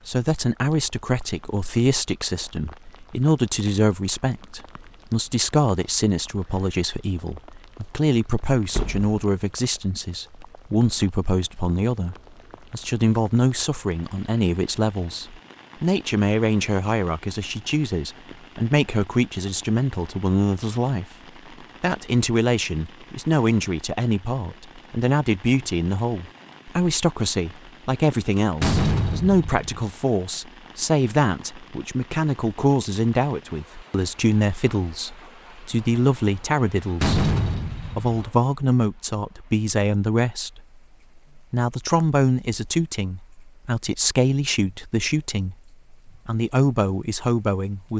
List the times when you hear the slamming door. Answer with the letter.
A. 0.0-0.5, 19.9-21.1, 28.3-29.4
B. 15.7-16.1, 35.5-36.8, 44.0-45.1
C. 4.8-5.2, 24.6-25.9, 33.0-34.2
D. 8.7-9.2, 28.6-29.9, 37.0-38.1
D.